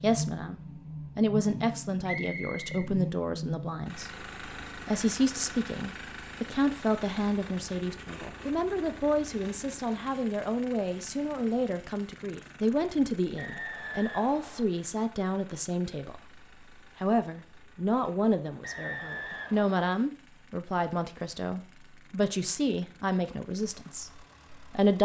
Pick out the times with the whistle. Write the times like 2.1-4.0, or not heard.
2.0-2.9, 13.3-14.7, 18.6-19.9.